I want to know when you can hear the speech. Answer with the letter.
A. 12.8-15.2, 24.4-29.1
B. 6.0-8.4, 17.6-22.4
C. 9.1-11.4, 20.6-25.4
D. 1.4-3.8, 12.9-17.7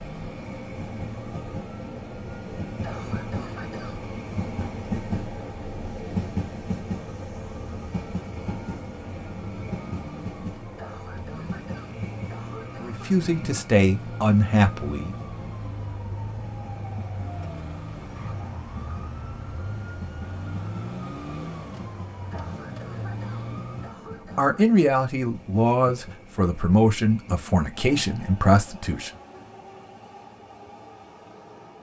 A.